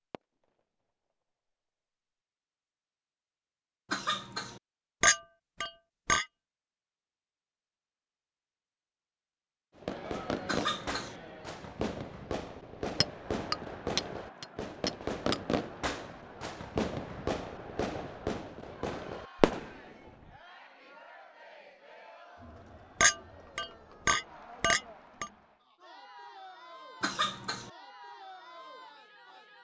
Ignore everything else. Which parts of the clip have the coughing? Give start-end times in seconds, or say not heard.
3.9-4.6, 10.4-11.2, 27.0-27.7.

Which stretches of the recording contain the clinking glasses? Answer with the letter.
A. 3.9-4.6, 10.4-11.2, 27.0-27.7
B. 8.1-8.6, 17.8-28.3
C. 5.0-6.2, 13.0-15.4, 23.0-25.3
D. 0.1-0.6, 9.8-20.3
C.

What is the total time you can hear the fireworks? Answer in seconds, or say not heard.
11 s.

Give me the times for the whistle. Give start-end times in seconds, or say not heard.
not heard.